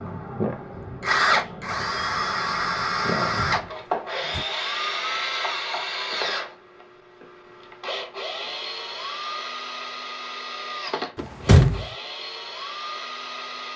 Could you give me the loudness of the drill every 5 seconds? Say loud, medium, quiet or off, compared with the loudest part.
loud, medium, medium.